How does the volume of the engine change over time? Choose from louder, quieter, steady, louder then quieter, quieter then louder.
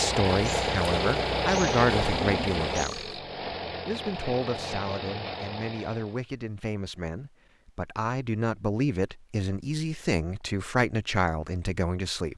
quieter.